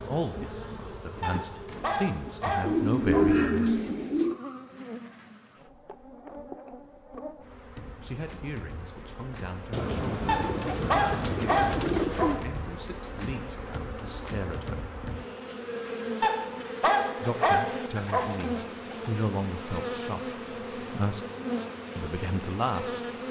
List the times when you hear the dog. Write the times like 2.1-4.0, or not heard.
1.2-3.2, 10.2-12.3, 16.2-18.2.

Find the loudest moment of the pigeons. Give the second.
3 s.